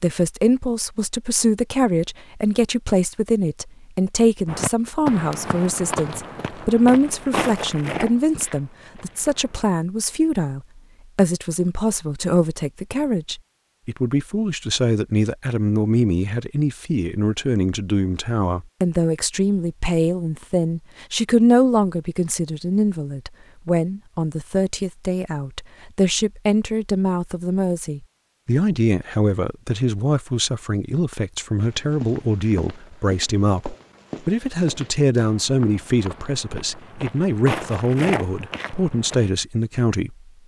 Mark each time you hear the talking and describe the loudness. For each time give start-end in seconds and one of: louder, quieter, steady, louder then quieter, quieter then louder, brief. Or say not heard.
0.0-40.1 steady.